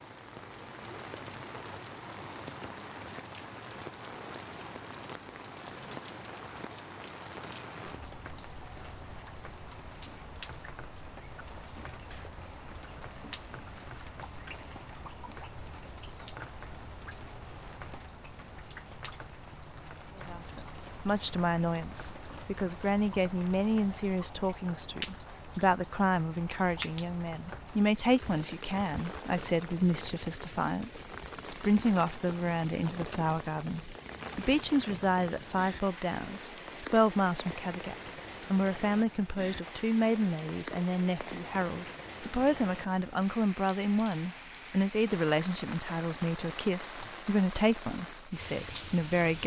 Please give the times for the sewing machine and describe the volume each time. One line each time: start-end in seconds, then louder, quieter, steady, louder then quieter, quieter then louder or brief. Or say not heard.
not heard.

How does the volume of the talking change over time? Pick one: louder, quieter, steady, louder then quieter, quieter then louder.
steady.